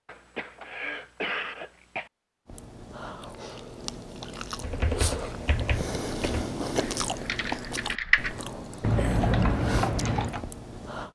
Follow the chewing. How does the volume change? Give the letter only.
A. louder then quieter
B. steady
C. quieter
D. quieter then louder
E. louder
A.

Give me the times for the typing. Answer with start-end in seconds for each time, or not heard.
4.6-10.4.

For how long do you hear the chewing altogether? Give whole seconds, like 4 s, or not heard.
9 s.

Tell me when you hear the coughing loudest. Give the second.
1 s.